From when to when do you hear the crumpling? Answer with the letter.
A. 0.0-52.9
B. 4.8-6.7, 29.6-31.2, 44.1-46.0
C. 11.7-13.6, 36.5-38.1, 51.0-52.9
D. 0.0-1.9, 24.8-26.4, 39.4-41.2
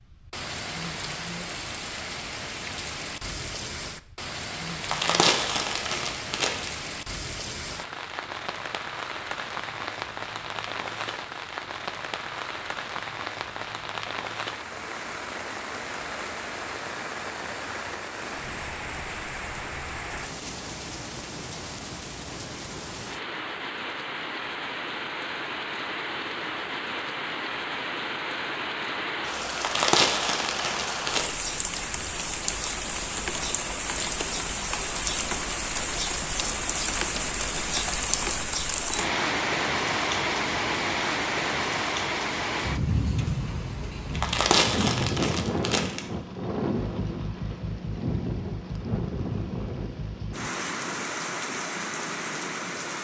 B.